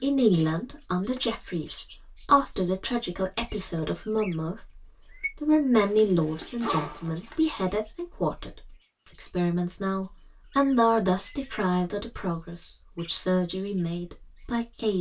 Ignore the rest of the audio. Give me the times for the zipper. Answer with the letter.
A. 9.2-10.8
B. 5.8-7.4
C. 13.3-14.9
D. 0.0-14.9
B.